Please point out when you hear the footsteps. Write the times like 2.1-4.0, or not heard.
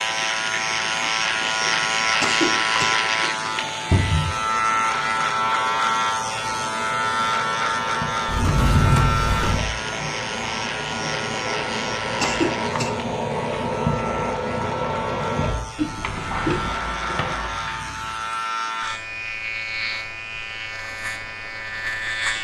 not heard.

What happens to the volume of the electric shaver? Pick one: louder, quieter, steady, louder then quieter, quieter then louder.
quieter.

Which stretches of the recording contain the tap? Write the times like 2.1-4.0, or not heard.
0.0-18.4.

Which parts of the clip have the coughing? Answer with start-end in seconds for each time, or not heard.
1.7-2.9, 11.7-12.9, 15.8-16.8.